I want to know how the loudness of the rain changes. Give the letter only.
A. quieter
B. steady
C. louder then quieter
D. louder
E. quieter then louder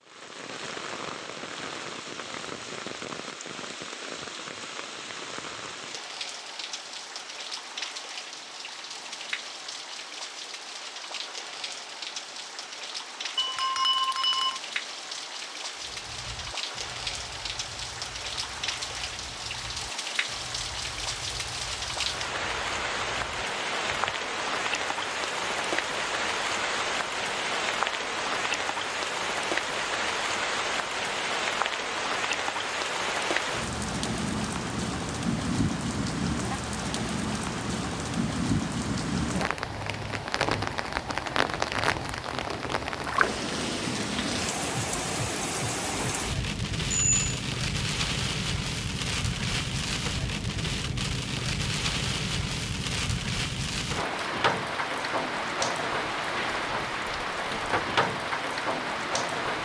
D.